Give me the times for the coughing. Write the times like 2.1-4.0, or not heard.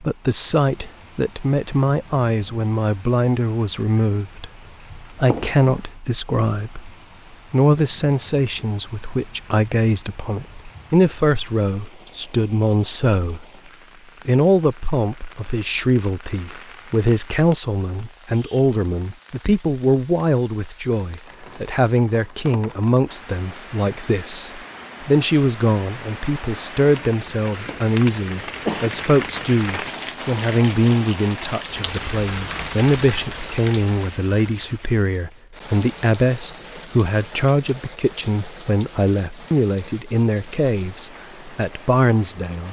5.2-5.7, 27.6-28.9.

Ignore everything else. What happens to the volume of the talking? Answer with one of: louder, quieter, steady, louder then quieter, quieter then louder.
steady.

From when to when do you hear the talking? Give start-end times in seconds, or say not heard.
0.0-6.9, 7.5-13.4, 14.2-42.6.